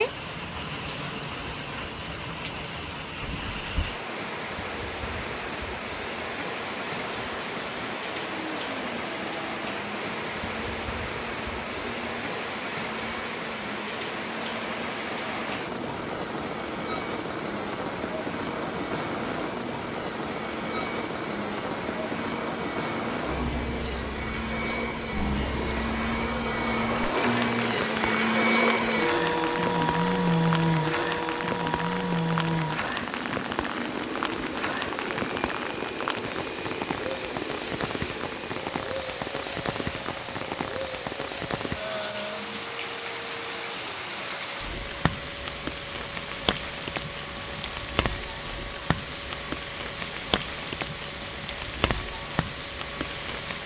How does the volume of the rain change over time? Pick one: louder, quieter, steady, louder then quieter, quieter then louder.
steady.